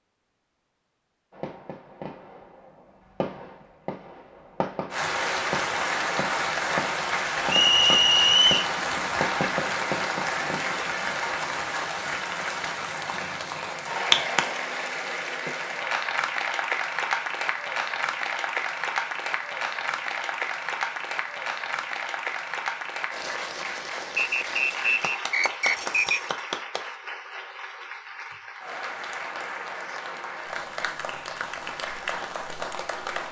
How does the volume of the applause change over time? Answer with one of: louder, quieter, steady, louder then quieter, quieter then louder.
quieter.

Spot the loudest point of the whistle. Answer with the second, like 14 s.
8 s.